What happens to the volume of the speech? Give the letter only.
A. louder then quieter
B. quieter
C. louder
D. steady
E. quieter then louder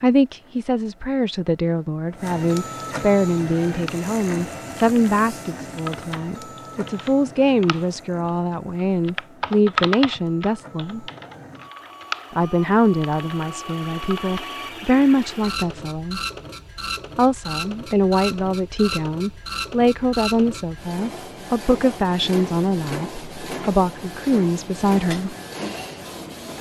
D.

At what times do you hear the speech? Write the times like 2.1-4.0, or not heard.
0.0-11.1, 12.3-16.2, 17.1-25.4.